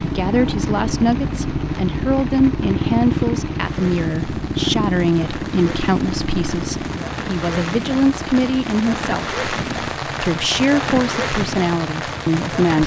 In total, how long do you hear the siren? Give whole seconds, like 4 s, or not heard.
not heard.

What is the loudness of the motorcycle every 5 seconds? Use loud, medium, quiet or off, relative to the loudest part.
loud, medium, medium.